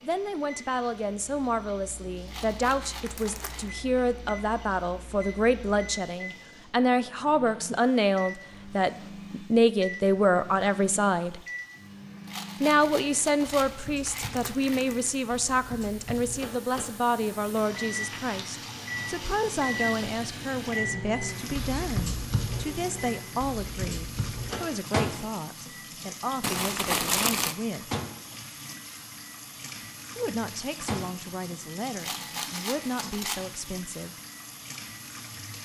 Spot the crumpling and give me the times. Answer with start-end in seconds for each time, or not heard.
3.0-3.7, 14.1-15.1, 26.4-27.6.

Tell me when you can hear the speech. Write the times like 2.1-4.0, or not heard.
0.0-11.4, 12.6-28.0, 30.1-34.2.